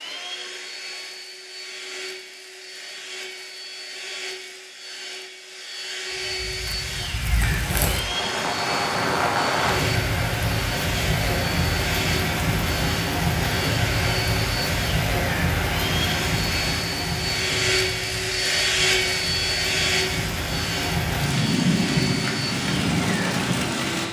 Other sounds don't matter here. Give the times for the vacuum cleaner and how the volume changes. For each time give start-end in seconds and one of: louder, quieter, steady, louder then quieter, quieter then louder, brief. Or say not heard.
0.0-24.0 louder.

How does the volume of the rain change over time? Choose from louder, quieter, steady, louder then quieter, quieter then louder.
quieter then louder.